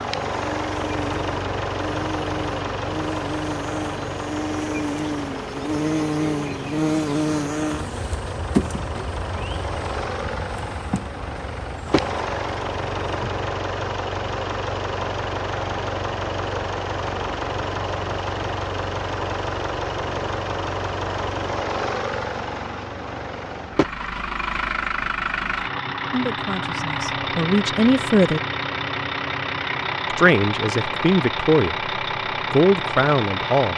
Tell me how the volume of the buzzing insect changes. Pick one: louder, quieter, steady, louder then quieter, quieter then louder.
louder then quieter.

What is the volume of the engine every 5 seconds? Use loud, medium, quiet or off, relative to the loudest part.
loud, medium, loud, loud, loud, loud, loud.